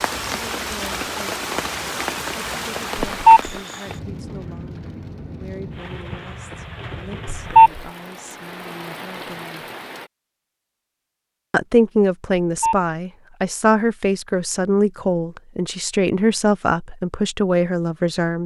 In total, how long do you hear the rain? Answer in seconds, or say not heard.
10 s.